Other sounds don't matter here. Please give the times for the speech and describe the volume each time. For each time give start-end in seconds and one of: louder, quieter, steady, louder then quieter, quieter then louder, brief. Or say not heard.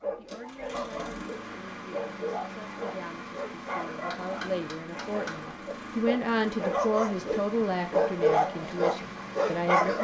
0.0-9.9 louder then quieter.